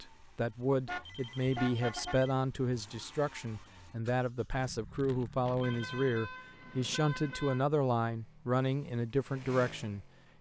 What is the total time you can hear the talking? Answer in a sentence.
You can hear the talking for 10 seconds altogether.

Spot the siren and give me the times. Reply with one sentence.
The siren can't be heard in this clip.